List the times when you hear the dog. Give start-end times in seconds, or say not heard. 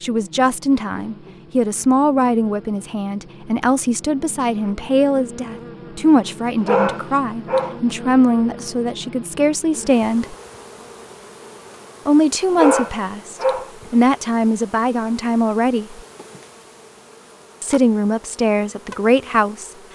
6.6-7.8, 12.6-13.7.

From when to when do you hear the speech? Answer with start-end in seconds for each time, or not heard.
0.0-10.3, 12.1-16.0, 17.6-19.7.